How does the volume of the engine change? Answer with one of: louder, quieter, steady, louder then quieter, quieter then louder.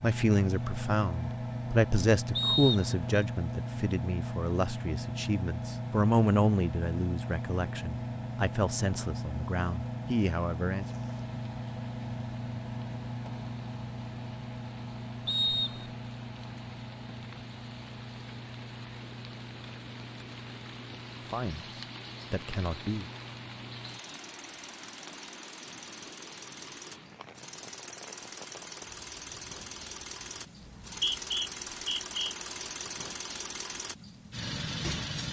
quieter then louder.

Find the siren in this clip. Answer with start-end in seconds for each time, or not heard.
not heard.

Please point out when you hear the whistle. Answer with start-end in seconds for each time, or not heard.
2.4-3.1, 15.2-15.9, 30.6-32.4.